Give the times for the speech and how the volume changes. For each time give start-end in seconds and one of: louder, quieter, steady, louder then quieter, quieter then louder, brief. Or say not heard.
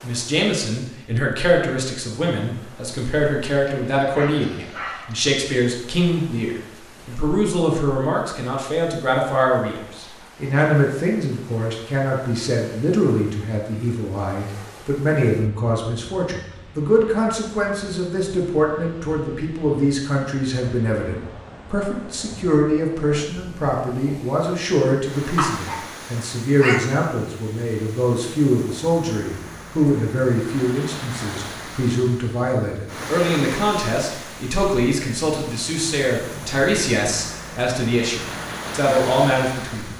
0.0-39.9 steady.